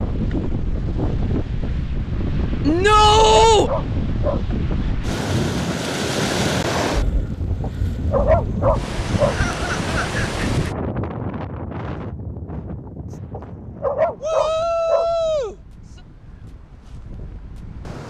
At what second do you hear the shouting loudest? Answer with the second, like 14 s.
3 s.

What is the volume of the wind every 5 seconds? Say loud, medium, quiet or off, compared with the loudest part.
loud, loud, medium, quiet.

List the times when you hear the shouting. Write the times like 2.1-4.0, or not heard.
2.6-3.7, 14.2-15.6.